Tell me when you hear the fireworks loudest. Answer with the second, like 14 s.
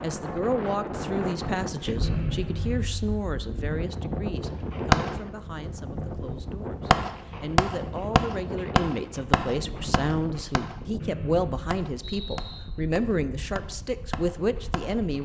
5 s.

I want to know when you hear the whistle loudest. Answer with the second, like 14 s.
2 s.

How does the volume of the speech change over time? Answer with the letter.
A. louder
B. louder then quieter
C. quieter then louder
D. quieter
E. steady
C.